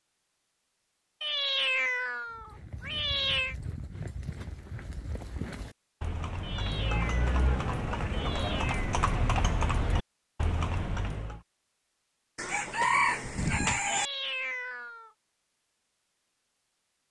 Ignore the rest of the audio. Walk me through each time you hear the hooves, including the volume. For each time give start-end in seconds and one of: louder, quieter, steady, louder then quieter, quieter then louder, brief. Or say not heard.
2.3-11.4 louder.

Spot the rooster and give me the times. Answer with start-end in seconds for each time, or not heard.
12.3-14.1.